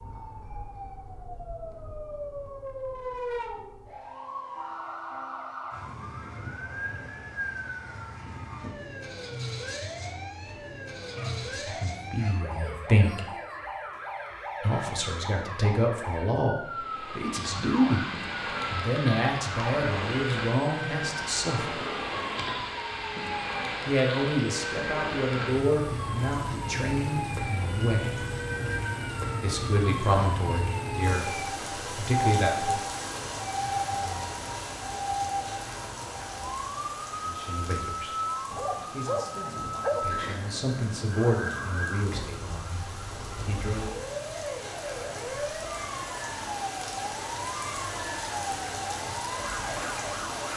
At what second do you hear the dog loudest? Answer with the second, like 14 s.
40 s.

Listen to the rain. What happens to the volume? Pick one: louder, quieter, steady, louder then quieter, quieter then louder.
quieter then louder.